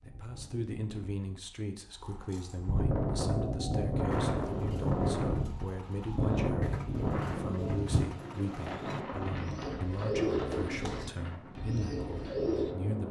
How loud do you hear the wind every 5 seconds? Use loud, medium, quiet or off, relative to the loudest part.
loud, loud, medium.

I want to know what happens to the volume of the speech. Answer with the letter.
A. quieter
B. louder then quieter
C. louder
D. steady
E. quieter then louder
D.